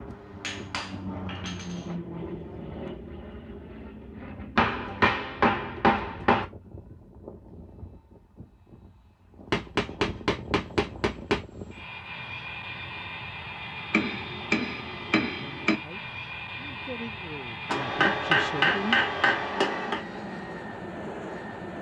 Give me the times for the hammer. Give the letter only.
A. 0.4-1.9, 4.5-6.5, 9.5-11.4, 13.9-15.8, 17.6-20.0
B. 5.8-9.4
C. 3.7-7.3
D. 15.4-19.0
A.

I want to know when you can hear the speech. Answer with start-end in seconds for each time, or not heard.
15.4-19.0.